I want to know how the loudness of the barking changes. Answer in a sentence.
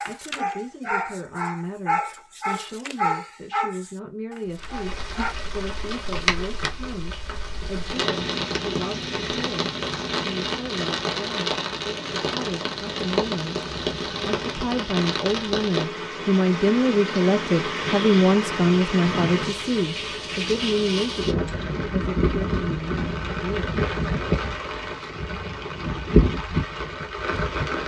The volume of the barking goes down.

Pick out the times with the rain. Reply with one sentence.
The rain can be heard from 4.5 to 27.8 s.